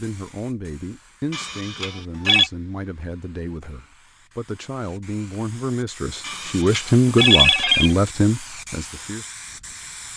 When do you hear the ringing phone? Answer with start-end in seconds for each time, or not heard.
1.3-2.5, 6.2-8.0.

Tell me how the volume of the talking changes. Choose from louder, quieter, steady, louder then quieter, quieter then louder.
louder.